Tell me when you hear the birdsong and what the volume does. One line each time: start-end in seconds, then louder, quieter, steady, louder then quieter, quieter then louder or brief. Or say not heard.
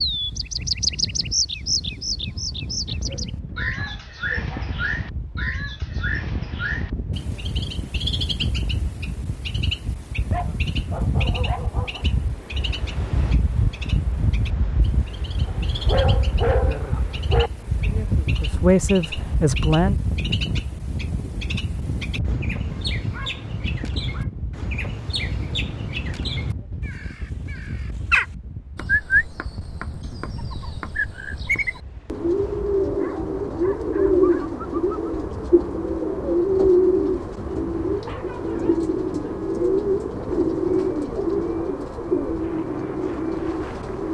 0.0-44.1 quieter then louder.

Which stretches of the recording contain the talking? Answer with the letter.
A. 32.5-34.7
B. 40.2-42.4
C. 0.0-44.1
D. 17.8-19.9
D.